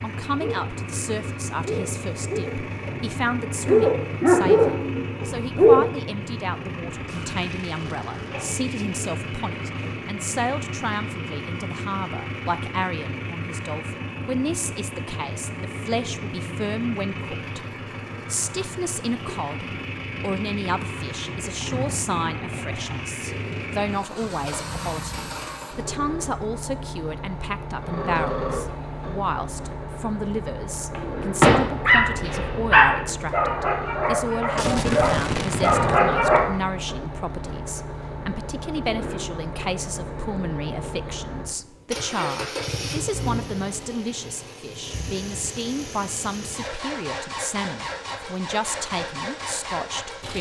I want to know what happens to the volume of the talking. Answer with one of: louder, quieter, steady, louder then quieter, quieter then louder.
steady.